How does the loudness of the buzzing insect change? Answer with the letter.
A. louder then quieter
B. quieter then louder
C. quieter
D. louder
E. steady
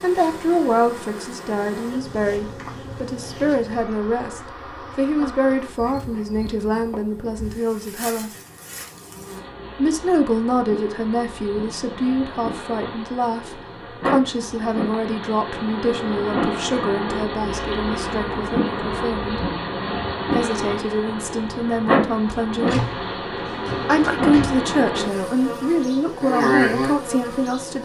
D.